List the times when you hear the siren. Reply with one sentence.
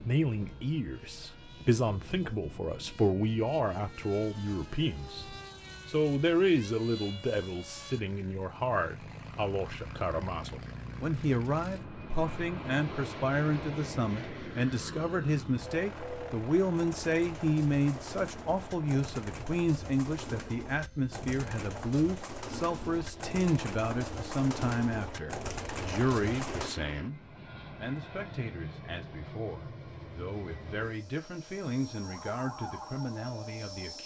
The siren can be heard from 31.9 to 34.0 s.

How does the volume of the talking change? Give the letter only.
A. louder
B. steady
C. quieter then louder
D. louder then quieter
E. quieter
E.